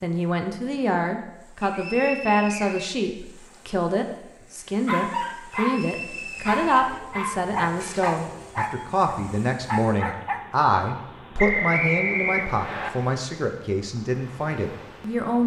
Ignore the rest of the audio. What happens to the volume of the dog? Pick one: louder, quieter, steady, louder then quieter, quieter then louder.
steady.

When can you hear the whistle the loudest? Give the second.
12 s.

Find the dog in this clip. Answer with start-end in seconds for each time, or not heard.
4.8-10.4.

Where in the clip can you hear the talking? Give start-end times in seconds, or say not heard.
0.0-15.4.